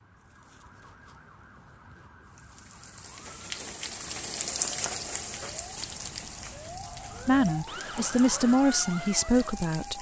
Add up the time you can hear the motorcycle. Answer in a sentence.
The motorcycle can't be heard in this clip.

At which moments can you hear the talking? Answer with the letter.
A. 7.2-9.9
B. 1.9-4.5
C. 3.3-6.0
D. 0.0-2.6
A.